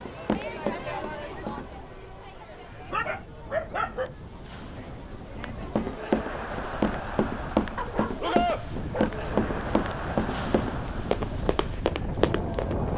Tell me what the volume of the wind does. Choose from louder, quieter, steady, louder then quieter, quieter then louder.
louder.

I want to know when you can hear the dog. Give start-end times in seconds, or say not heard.
2.9-4.1, 7.8-9.1.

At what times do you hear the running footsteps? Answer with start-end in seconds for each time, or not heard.
0.0-1.8, 5.4-12.9.